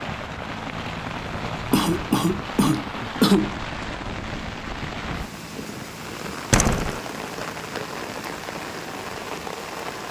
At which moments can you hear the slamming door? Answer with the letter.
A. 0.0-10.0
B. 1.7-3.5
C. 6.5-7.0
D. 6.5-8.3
C.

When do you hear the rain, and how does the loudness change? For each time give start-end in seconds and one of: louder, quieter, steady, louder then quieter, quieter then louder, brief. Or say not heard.
0.0-10.0 steady.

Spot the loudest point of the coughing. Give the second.
3 s.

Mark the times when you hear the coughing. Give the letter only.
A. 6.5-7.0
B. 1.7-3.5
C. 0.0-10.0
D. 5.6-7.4
B.